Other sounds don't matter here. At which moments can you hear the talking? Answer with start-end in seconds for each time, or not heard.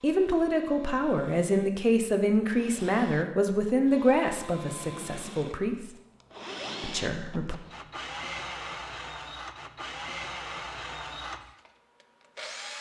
0.0-5.9, 6.8-7.6.